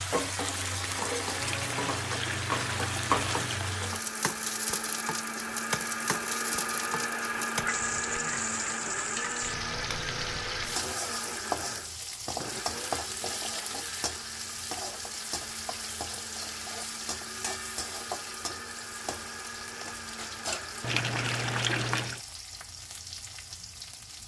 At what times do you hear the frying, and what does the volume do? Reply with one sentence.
The frying can be heard from 0.0 to 24.2 s, getting quieter.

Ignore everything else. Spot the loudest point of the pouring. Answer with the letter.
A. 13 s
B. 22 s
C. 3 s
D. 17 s
B.